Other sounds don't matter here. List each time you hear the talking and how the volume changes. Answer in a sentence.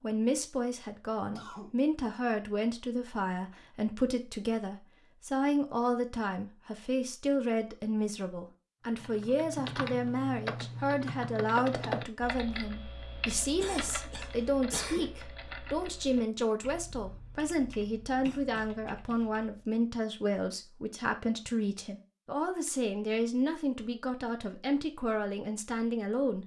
You can hear the talking from 0.0 to 26.4 s, at a steady volume.